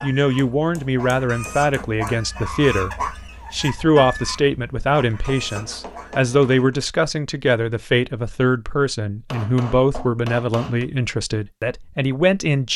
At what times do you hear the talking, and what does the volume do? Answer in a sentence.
You can hear the talking from 0.0 to 12.7 s, at a steady volume.